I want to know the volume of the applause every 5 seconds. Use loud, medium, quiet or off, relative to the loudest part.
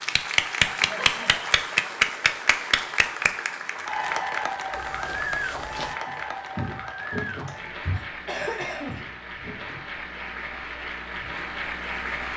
loud, medium, medium.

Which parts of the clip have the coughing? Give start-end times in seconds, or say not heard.
0.8-1.4, 7.5-9.0.